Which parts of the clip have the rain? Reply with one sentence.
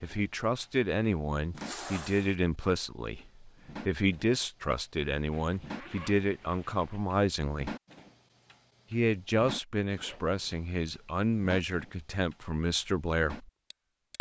You can't hear the rain here.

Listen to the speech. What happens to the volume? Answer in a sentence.
The volume of the speech stays about the same.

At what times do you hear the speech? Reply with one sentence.
The speech can be heard from 0.0 to 7.8 s and from 8.9 to 13.5 s.